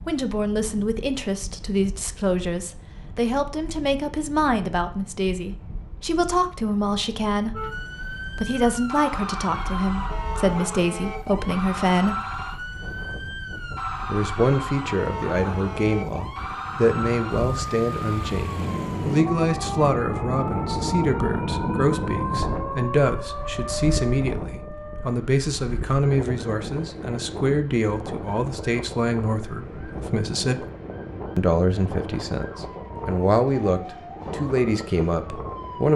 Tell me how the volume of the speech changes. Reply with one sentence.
The loudness of the speech stays about the same.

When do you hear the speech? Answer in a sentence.
The speech can be heard from 0.1 to 7.8 s, from 8.3 to 12.2 s, from 14.1 to 30.6 s and from 31.4 to 35.9 s.